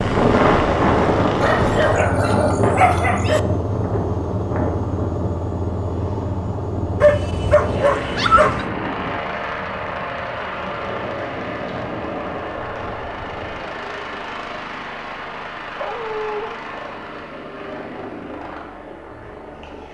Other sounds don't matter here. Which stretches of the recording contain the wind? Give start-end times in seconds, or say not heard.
0.0-13.6.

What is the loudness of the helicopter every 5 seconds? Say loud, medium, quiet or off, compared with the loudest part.
loud, loud, loud, medium.